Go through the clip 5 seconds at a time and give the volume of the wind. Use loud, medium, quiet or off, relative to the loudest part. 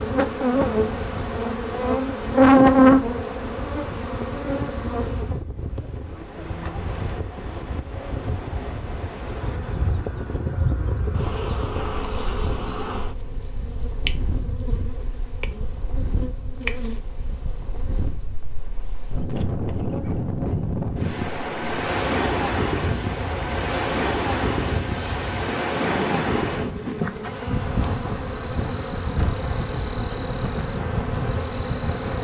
medium, medium, medium, medium, loud, loud, medium.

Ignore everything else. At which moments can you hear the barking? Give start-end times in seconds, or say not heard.
not heard.